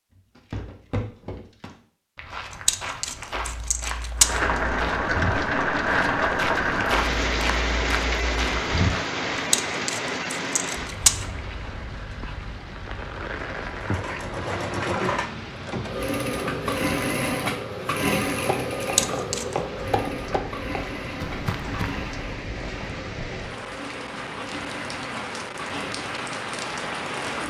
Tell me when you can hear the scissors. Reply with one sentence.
The scissors can be heard from 2.5 to 4.4 s, from 9.3 to 11.2 s and from 18.8 to 19.6 s.